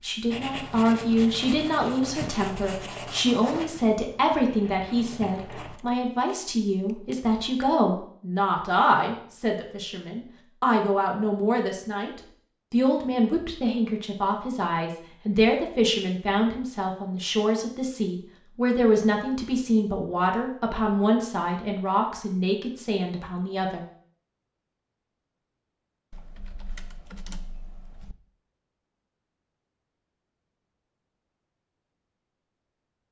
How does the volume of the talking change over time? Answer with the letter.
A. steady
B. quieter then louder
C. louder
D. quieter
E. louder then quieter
A.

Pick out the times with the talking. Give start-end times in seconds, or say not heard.
0.0-23.9.